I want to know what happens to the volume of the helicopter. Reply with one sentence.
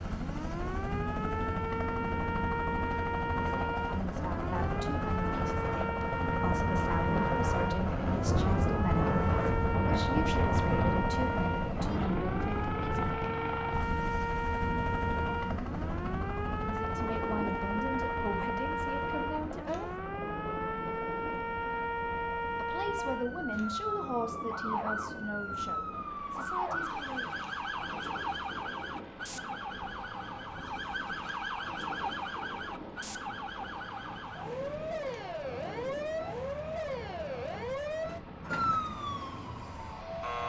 The volume of the helicopter goes down.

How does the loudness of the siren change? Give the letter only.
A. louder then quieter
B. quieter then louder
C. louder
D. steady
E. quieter
D.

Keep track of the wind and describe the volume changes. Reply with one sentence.
The volume of the wind goes down.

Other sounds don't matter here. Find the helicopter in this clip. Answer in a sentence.
The helicopter can be heard from 0.0 to 40.4 s.